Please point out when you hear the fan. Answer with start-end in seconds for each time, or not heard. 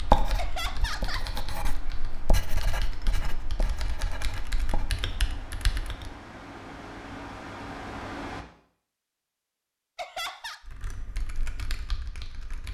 0.0-8.4.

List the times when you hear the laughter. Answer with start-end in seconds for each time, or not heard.
0.3-1.3, 9.9-10.6.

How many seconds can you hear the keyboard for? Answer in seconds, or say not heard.
8 s.